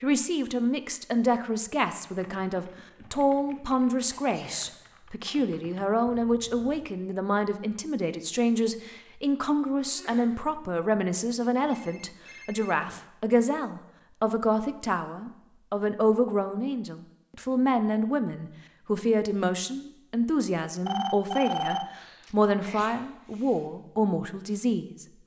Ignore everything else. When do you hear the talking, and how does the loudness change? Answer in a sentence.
You can hear the talking from 0.0 to 25.1 s, at a steady volume.